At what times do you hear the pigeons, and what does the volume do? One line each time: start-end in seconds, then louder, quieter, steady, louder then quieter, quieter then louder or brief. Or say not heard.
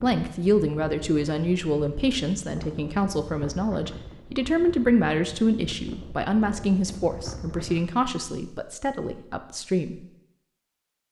not heard.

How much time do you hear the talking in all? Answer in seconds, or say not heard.
10 s.